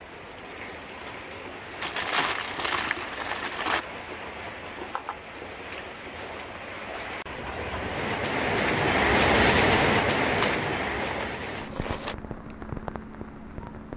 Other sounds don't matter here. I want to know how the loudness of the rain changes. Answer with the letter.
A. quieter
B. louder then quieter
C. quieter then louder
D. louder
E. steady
B.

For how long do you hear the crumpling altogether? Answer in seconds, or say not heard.
4 s.